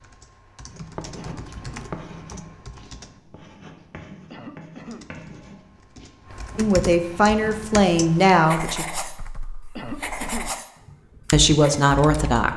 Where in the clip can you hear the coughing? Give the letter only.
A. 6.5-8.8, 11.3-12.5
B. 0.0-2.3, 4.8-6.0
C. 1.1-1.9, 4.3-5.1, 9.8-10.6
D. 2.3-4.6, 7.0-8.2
C.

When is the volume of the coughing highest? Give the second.
10 s.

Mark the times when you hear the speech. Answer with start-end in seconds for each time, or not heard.
6.5-8.8, 11.3-12.5.